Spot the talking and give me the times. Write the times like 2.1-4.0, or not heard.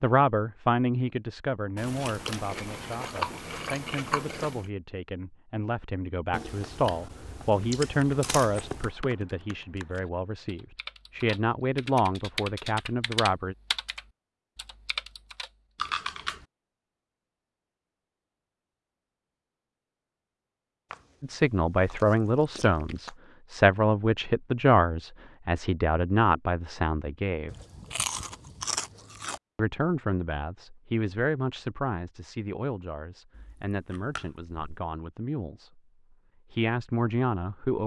0.0-13.6, 21.2-27.5, 29.6-35.8, 36.5-37.8.